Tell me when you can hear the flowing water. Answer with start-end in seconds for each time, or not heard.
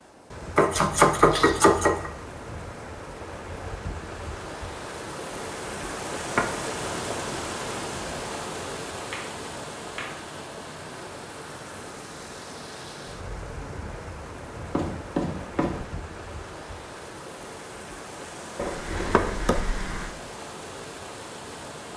0.0-21.9.